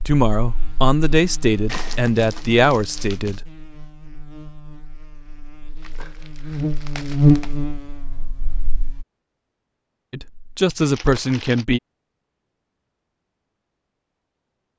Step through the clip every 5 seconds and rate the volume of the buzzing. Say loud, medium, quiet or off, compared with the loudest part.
quiet, loud, off.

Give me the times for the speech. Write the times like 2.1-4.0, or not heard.
0.1-3.5, 10.1-11.8.